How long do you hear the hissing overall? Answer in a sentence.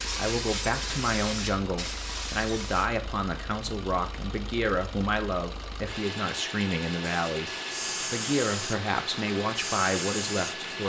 The hissing can be heard for 7 seconds in total.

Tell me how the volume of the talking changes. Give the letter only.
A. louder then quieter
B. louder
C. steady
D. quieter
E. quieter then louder
C.